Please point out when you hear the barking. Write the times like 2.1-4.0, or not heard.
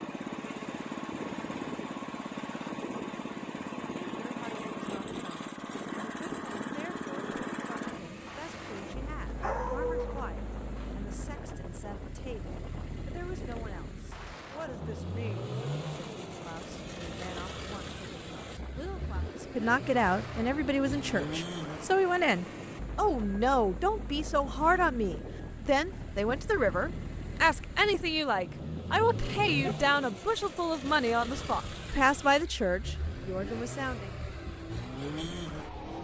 9.2-10.3, 28.4-29.8.